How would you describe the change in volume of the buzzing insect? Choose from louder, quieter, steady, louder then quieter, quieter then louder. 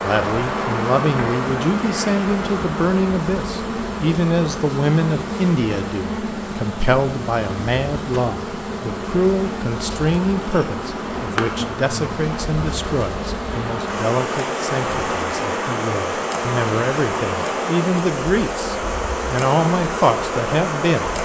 steady.